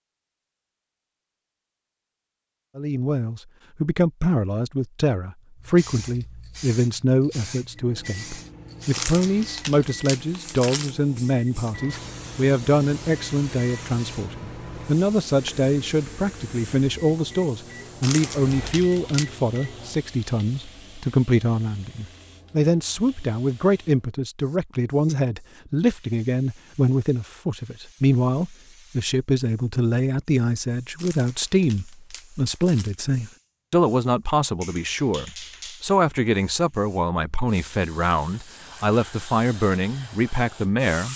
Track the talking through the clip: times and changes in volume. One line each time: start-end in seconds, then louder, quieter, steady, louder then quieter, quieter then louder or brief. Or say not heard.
2.8-41.1 steady.